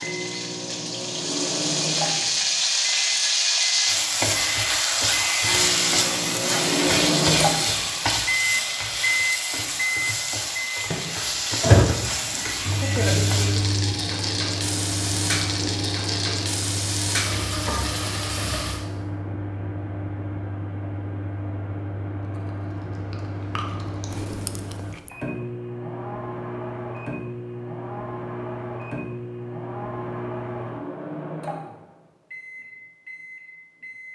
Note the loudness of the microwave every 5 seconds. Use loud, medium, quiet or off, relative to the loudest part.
medium, loud, loud, medium, medium, medium, medium.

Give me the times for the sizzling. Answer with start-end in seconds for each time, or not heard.
0.0-18.9.